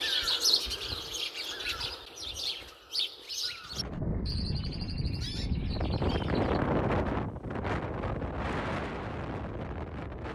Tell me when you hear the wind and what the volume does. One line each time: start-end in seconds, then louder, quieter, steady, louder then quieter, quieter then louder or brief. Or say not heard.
3.5-10.3 louder then quieter.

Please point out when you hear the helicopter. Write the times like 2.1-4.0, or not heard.
not heard.